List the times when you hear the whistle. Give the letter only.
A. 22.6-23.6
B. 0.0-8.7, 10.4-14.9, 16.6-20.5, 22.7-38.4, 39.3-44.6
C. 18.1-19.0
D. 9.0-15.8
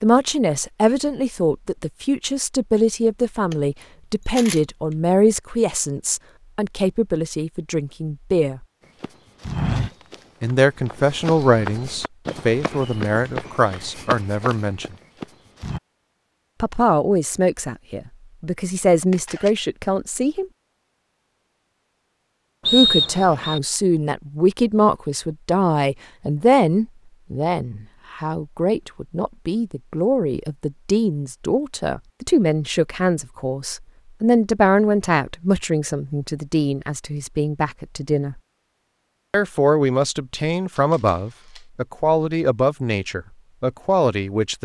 A.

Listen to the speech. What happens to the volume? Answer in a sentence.
The loudness of the speech stays about the same.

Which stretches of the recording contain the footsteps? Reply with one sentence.
The footsteps can be heard from 9.0 to 15.8 s.